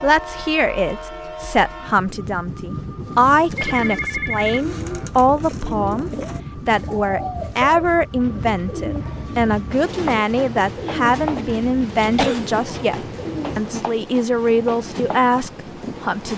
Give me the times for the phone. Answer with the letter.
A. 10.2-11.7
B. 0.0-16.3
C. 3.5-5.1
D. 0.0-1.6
C.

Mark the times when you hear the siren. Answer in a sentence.
The siren can't be heard in this clip.